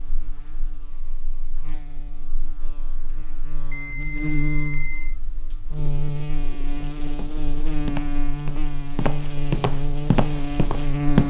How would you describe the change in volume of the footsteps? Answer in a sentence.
The volume of the footsteps goes up.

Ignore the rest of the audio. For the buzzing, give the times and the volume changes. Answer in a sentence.
The buzzing can be heard from 0.0 to 11.2 s, getting louder.